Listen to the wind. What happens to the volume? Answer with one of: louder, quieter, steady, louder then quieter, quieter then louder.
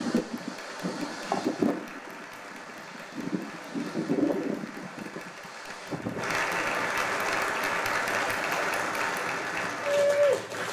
quieter.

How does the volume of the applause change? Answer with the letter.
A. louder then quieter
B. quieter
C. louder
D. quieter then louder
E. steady
C.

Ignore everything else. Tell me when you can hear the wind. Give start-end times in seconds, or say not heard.
0.0-10.6.